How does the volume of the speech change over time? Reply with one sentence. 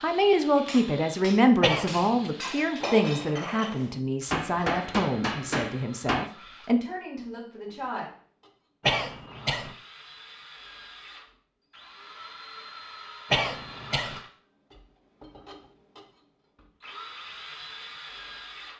The loudness of the speech goes down.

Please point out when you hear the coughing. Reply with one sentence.
The coughing can be heard from 1.6 to 2.3 s, from 8.8 to 9.8 s and from 13.3 to 14.2 s.